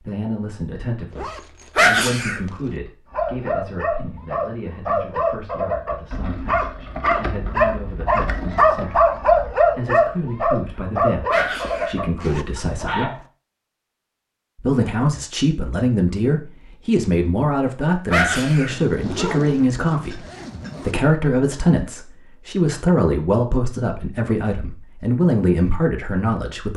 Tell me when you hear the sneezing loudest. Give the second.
2 s.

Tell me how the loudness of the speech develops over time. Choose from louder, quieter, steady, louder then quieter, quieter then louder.
louder.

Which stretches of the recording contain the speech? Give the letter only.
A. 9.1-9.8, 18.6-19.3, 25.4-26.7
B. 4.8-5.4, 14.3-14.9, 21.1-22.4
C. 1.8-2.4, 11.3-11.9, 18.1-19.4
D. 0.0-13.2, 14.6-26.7
D.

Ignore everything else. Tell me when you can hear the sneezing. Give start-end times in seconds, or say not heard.
1.8-2.4, 11.3-11.9, 18.1-19.4.